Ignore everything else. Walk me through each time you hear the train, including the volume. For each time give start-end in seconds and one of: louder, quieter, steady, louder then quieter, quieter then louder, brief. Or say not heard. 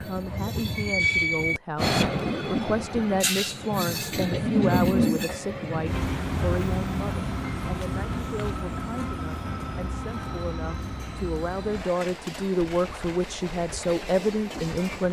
0.0-15.0 quieter.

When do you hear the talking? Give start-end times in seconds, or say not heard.
0.0-15.0.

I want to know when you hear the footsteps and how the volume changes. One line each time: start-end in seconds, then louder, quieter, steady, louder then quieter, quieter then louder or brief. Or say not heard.
not heard.